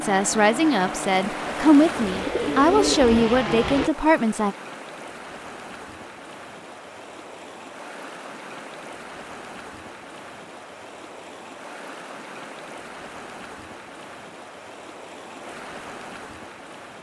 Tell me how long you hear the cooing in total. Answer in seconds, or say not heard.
2 s.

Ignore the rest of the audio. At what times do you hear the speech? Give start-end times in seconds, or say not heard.
0.0-4.5.